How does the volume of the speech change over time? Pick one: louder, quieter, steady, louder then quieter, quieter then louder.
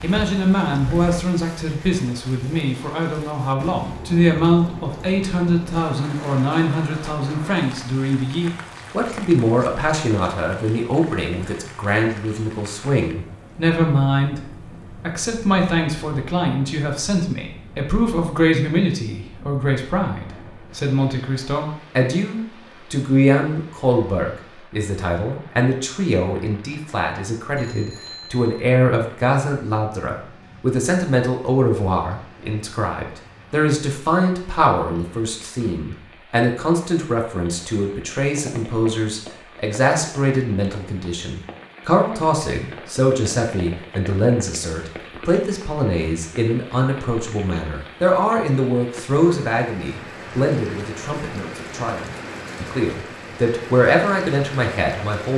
steady.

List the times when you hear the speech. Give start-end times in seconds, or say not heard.
0.0-55.3.